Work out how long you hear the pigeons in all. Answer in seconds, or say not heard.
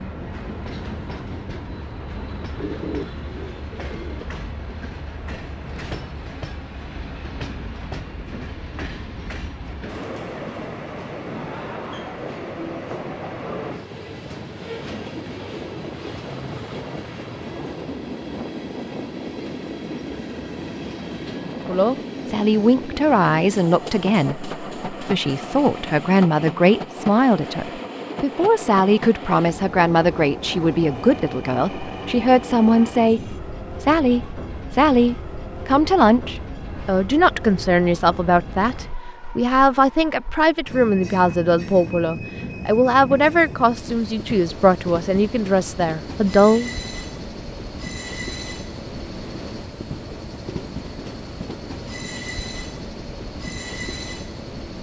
2 s.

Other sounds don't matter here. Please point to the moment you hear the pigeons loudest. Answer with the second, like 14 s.
3 s.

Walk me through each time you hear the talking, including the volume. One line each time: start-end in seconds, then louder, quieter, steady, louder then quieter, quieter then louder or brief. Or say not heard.
21.6-46.8 steady.